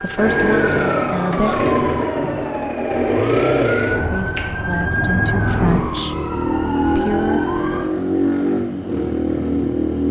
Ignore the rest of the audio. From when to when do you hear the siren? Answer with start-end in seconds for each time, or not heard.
0.0-7.9.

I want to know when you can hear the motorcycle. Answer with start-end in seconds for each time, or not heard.
0.0-10.0.